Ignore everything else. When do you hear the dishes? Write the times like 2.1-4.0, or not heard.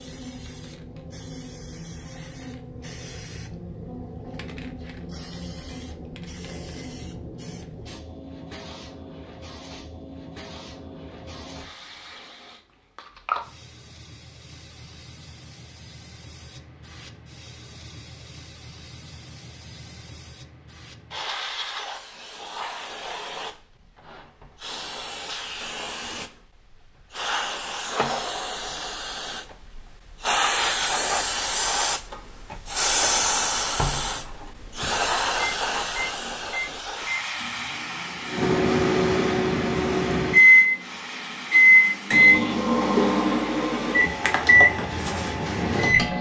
not heard.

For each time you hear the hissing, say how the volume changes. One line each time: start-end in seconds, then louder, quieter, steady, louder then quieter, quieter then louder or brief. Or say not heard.
0.0-46.1 louder then quieter.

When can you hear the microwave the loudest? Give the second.
42 s.